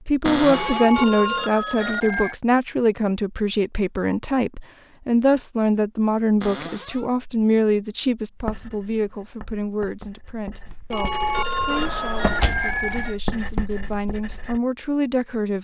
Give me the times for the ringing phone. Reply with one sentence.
You can hear the ringing phone from 0.5 to 2.4 s and from 10.9 to 13.2 s.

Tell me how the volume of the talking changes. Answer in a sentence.
The volume of the talking goes down.